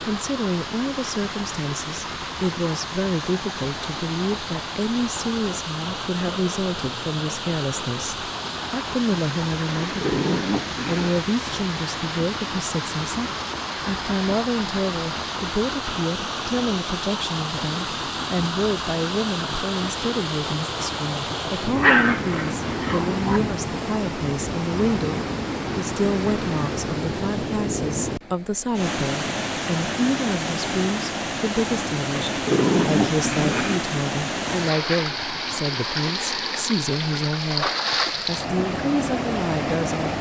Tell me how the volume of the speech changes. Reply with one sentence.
The volume of the speech stays about the same.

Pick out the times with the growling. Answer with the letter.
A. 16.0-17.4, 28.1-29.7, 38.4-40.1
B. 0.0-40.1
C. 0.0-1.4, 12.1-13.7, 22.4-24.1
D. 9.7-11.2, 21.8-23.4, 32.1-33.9
D.